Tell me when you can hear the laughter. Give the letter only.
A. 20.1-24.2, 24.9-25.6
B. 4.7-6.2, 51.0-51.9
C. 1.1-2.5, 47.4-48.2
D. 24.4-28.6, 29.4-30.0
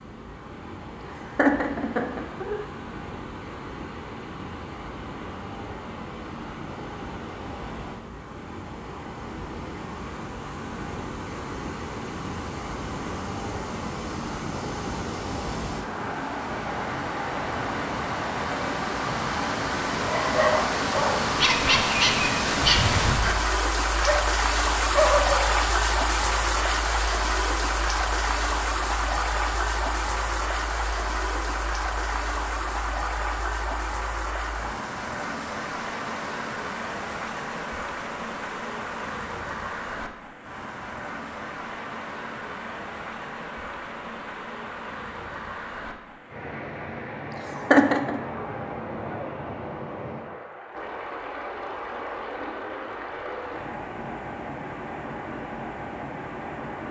C.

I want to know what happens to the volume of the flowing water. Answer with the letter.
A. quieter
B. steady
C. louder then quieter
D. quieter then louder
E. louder
C.